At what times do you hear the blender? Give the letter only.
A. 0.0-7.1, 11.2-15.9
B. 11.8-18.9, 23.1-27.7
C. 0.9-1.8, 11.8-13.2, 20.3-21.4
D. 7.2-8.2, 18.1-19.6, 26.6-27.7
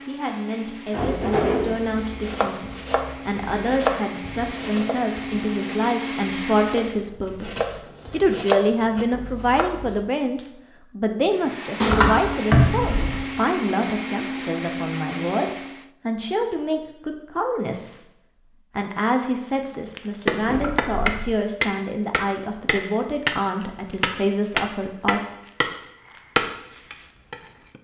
A.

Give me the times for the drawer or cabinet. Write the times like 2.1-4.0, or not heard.
0.9-1.8, 11.8-13.2, 20.3-21.4.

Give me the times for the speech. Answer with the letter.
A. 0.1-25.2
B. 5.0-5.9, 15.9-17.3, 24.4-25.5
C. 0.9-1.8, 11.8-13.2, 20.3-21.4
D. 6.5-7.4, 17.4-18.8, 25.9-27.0
A.